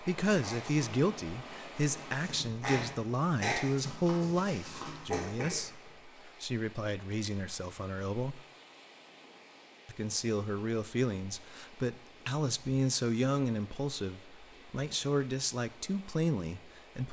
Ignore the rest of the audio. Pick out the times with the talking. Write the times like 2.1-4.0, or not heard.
0.0-8.4, 9.8-17.0.